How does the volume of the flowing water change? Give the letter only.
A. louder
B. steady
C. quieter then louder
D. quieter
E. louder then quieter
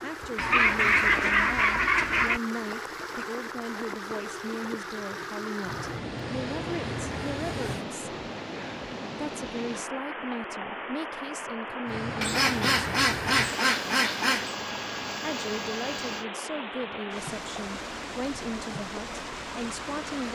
B.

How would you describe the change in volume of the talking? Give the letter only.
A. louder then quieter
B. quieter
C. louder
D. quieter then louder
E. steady
E.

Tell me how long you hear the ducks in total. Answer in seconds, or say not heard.
4 s.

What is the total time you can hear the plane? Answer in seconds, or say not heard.
7 s.